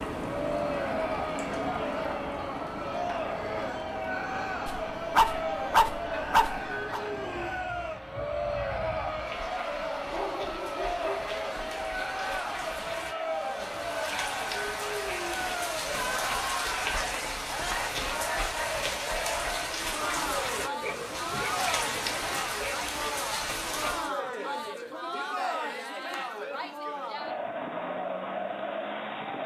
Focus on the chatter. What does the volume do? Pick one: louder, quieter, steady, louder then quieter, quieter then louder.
steady.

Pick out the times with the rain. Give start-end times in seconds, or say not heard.
0.0-24.1.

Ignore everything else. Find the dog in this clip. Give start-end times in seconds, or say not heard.
4.7-7.0, 10.1-12.4, 20.8-22.4.